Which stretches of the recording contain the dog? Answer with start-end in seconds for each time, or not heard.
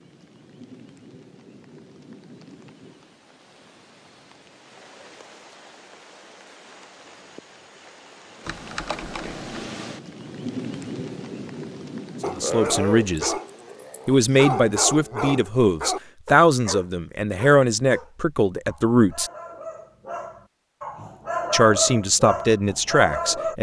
12.2-23.5.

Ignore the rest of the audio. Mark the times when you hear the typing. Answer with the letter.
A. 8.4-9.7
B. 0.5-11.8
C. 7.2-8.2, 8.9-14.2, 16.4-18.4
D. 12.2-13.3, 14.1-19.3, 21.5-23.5
A.